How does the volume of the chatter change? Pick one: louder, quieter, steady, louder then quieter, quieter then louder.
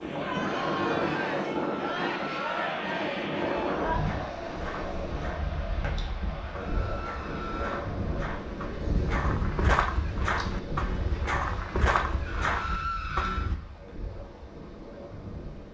quieter.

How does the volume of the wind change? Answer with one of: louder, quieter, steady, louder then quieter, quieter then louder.
quieter.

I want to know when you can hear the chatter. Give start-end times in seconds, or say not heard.
0.0-8.3.